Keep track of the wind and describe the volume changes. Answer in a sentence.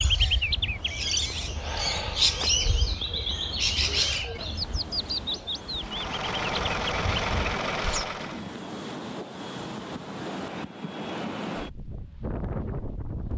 The loudness of the wind goes up.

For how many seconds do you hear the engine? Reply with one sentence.
You can hear the engine for 3 seconds altogether.